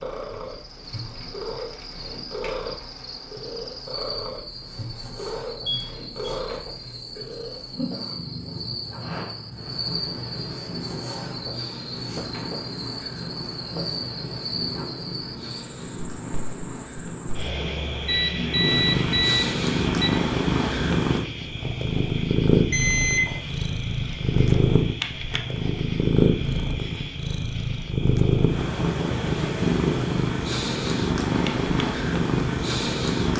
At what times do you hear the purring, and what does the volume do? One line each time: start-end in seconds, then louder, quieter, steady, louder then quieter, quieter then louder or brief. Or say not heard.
0.0-33.3 louder.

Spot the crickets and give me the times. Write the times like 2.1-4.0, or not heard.
0.0-33.3.